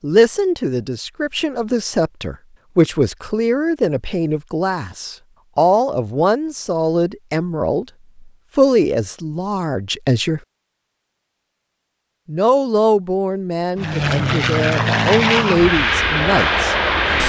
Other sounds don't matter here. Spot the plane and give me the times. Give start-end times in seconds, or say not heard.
13.8-17.2.